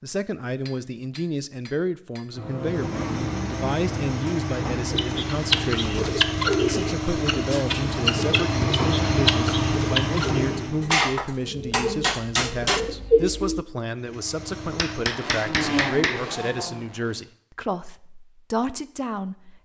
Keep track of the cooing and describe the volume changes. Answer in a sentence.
The volume of the cooing goes down, then up.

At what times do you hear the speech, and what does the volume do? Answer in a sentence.
You can hear the speech from 0.0 to 19.6 s, at a steady volume.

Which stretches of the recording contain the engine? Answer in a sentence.
The engine can be heard from 2.6 to 10.9 s and from 13.9 to 17.2 s.